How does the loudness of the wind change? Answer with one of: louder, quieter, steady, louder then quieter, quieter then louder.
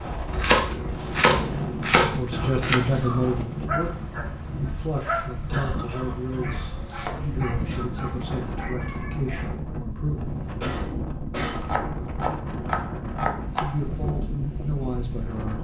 steady.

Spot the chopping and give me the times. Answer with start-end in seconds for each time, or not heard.
0.3-2.8, 6.5-8.5, 11.6-13.8.